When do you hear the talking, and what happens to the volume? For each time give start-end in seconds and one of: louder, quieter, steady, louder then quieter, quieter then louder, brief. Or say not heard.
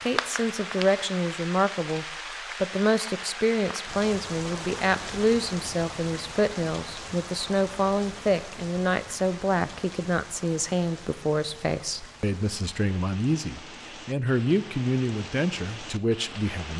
0.0-16.7 steady.